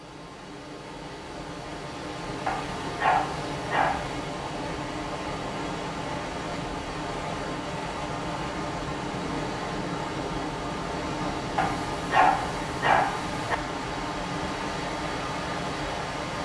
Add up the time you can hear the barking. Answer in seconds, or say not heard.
4 s.